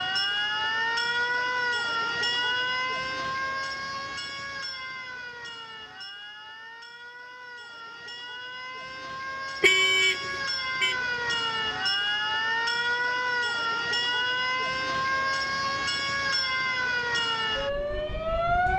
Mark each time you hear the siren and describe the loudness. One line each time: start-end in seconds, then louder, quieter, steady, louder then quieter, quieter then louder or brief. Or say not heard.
0.0-18.7 quieter then louder.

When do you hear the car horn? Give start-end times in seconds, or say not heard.
9.6-10.9.